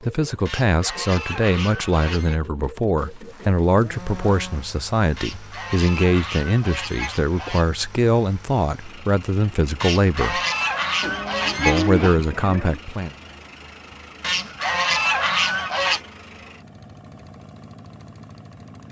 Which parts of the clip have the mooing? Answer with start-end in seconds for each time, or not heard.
3.0-4.7, 11.0-12.8.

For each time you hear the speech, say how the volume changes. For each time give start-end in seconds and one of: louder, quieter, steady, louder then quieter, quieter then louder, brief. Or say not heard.
0.0-10.4 steady
11.6-13.2 brief.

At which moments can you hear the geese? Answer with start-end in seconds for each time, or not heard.
0.5-2.4, 5.2-7.7, 9.8-12.2, 14.2-16.0.